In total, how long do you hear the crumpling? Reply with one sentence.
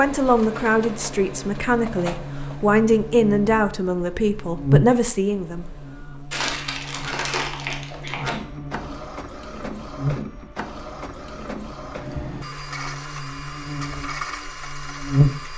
You can hear the crumpling for 2 seconds altogether.